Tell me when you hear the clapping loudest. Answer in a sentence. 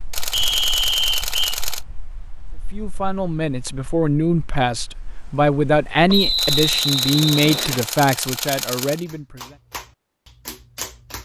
The loudest moment of the clapping is at 11 seconds.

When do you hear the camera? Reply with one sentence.
You can hear the camera from 0.1 to 1.9 s and from 6.3 to 9.1 s.